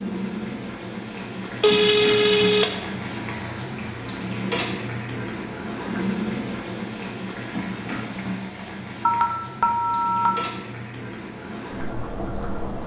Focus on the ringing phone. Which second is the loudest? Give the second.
2 s.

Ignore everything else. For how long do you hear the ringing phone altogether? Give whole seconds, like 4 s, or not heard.
2 s.